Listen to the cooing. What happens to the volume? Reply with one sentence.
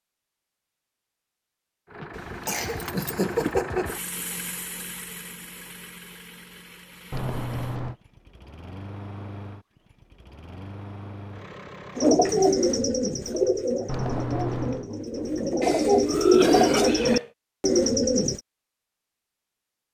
The volume of the cooing goes down, then up.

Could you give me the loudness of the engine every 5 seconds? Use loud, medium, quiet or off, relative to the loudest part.
loud, medium, medium, off.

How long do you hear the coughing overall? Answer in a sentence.
The coughing can be heard for 3 seconds in total.